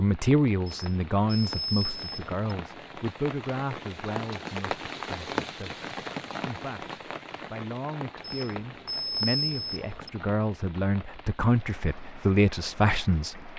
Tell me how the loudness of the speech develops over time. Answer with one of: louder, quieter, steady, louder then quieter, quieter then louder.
quieter then louder.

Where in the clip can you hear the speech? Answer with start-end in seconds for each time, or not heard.
0.0-13.5.